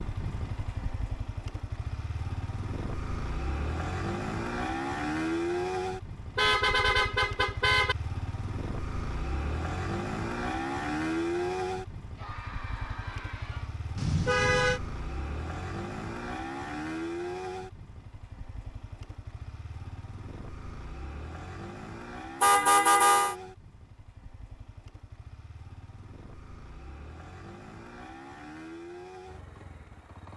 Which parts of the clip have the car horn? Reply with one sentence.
The car horn can be heard from 6.3 to 8.0 s, from 13.9 to 14.8 s and from 22.4 to 23.4 s.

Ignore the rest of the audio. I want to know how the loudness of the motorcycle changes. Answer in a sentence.
The volume of the motorcycle goes down.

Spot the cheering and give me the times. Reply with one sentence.
The cheering can be heard from 12.2 to 13.8 s.